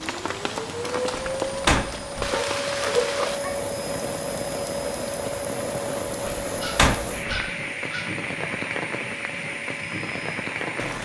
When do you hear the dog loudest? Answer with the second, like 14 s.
3 s.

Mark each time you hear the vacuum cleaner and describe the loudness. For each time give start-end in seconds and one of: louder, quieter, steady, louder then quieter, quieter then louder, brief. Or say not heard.
0.0-10.9 quieter.